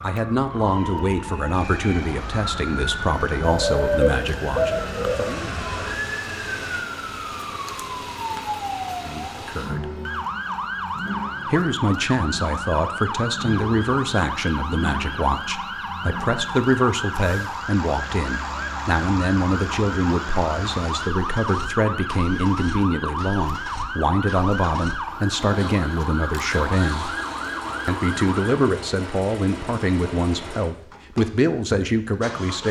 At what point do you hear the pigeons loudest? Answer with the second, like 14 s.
4 s.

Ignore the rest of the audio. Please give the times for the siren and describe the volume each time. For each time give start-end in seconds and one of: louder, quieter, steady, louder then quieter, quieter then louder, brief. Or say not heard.
0.0-28.6 steady.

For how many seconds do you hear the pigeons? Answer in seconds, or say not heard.
2 s.